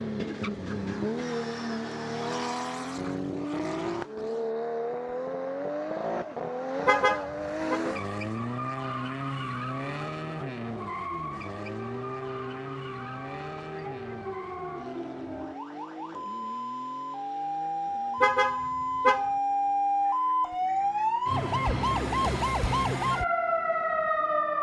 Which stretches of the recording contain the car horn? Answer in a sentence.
You can hear the car horn from 6.8 to 7.8 s and from 18.2 to 19.3 s.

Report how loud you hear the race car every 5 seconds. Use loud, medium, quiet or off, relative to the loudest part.
loud, loud, medium, quiet, quiet.